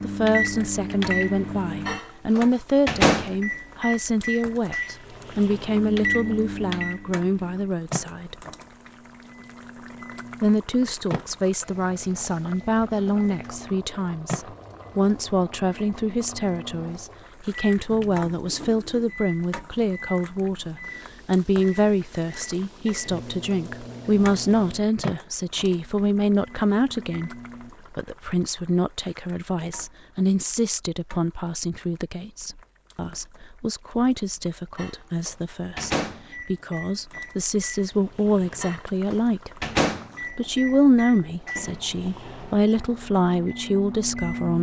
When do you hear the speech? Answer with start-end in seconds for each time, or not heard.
0.0-8.3, 10.4-27.3, 27.9-39.6, 40.3-44.5.